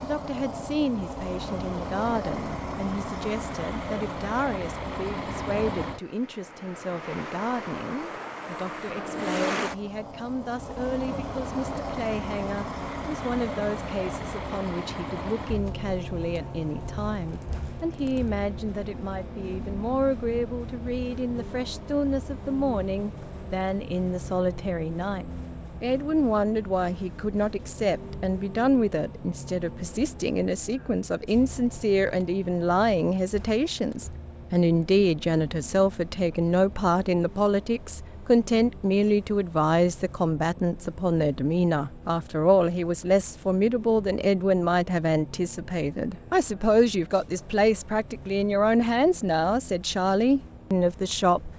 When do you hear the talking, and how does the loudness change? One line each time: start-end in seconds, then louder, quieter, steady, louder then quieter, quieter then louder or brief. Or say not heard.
0.0-51.5 louder.